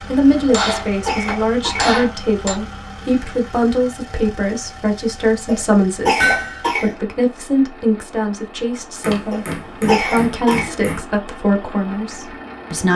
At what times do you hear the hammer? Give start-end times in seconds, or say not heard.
0.3-2.5, 6.2-6.7, 9.0-11.1.